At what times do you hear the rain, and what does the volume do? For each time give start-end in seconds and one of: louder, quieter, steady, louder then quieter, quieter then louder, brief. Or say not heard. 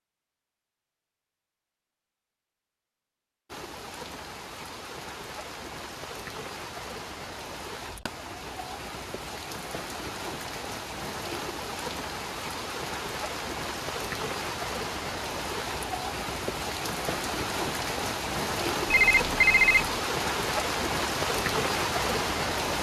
3.5-22.7 louder.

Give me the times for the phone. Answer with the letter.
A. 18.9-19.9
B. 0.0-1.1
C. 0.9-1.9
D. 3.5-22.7
A.